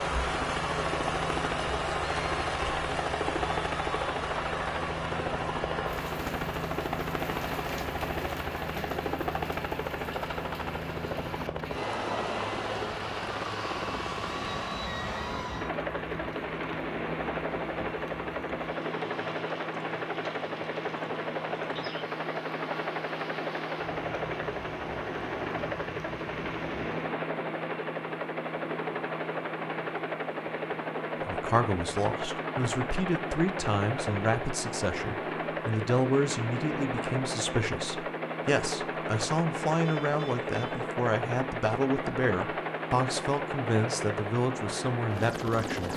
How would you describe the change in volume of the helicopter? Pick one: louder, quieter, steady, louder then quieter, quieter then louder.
steady.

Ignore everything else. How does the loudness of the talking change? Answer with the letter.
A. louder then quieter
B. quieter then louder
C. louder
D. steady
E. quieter
D.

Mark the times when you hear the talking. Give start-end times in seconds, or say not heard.
31.2-45.9.